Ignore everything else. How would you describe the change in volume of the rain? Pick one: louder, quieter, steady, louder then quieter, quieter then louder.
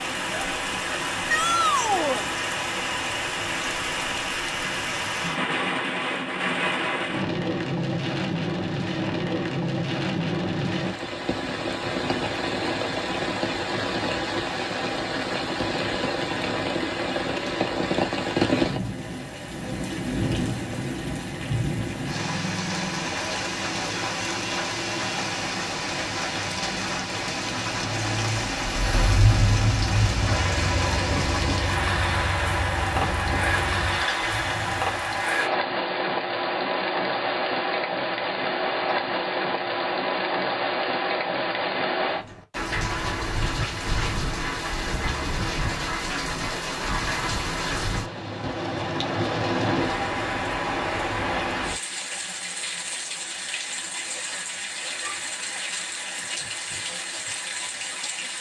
steady.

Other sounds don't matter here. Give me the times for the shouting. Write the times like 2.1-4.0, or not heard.
1.2-2.2.